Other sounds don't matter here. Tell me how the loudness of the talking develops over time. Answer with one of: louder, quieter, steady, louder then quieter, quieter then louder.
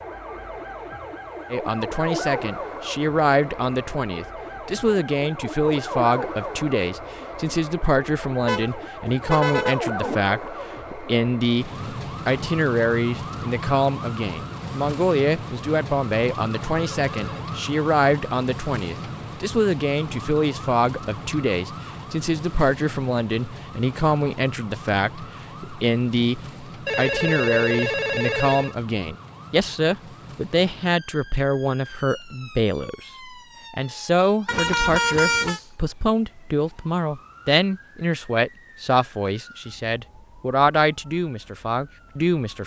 steady.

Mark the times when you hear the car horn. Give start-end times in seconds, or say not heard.
8.4-10.2, 34.5-35.6.